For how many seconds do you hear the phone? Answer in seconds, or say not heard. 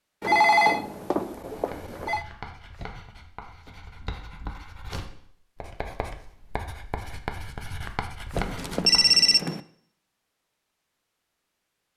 3 s.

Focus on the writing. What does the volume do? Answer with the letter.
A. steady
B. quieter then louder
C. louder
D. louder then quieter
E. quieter
C.